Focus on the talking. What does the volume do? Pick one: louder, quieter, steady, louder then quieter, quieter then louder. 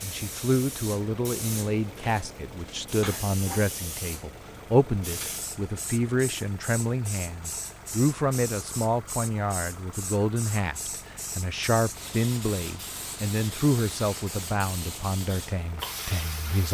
steady.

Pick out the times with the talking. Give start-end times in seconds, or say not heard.
0.0-16.7.